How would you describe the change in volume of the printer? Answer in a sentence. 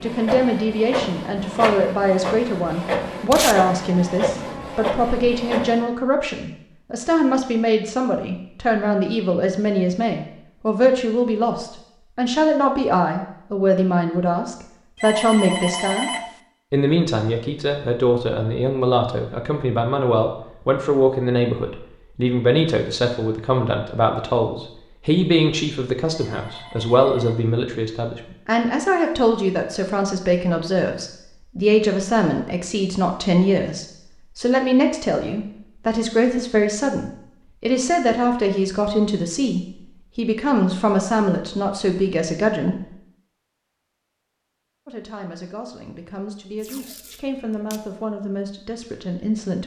The volume of the printer stays about the same.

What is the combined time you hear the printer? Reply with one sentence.
The printer can be heard for 6 seconds in total.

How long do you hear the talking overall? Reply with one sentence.
You can hear the talking for 47 seconds altogether.